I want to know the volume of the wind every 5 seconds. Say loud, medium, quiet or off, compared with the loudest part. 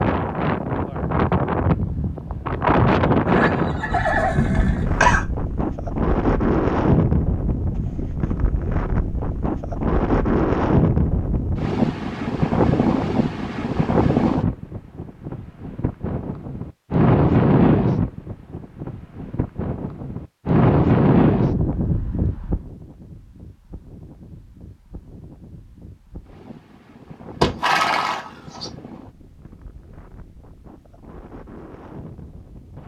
loud, loud, loud, loud, loud, quiet, quiet.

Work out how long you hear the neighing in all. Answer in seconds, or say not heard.
3 s.